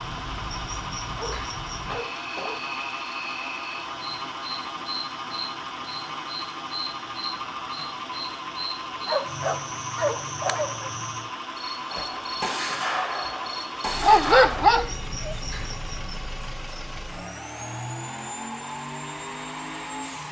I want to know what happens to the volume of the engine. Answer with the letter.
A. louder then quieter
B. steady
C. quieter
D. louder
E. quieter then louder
B.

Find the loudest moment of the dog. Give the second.
14 s.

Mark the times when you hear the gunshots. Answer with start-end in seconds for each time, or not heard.
11.8-14.8.